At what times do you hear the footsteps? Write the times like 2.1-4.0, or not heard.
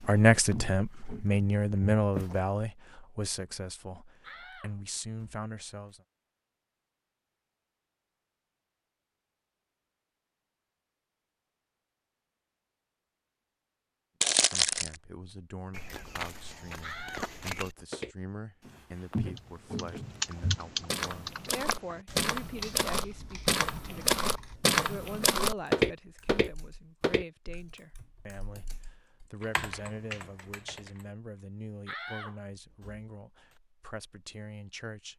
0.0-2.4, 15.7-27.2.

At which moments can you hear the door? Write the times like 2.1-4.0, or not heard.
4.2-6.0, 16.8-17.9, 31.9-33.5.